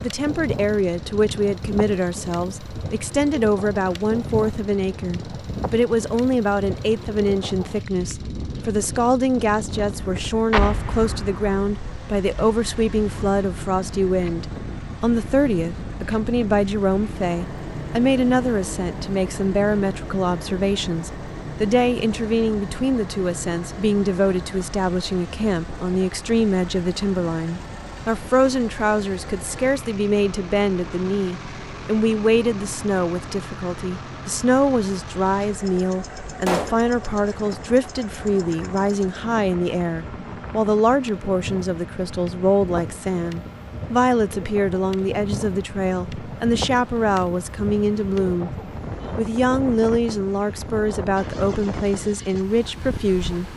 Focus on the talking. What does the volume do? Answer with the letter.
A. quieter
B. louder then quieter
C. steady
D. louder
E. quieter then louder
C.